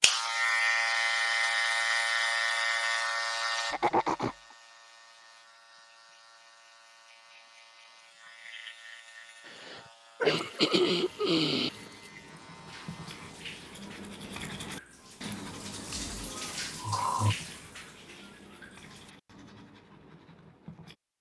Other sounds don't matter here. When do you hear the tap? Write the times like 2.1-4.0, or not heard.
10.3-19.1.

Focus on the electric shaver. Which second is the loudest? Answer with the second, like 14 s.
1 s.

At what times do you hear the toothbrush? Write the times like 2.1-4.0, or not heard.
10.9-20.9.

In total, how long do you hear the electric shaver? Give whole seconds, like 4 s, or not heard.
13 s.